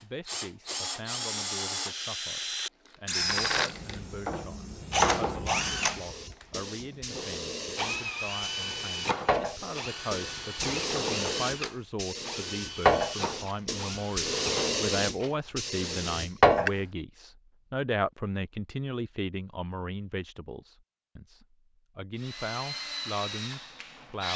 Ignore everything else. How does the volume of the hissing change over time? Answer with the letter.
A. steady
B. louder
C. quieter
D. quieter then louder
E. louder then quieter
B.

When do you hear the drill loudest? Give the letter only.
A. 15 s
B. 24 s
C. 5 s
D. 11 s
C.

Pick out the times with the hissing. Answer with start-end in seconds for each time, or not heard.
3.2-16.8.